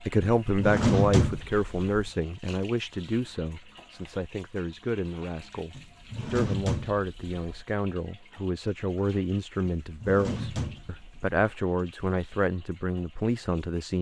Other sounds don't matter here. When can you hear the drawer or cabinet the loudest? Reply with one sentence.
The volume of the drawer or cabinet peaks at 1 second.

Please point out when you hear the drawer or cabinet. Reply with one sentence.
You can hear the drawer or cabinet from 0.5 to 2.1 s, from 5.8 to 7.7 s and from 9.8 to 11.3 s.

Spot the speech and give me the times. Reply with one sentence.
The speech can be heard from 0.1 to 13.9 s.